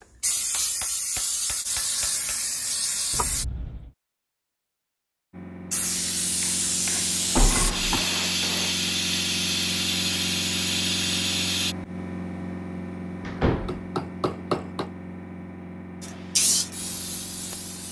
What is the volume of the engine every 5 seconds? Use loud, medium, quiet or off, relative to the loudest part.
off, loud, loud, medium.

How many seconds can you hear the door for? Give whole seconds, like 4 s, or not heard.
2 s.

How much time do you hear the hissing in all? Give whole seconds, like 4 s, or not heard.
11 s.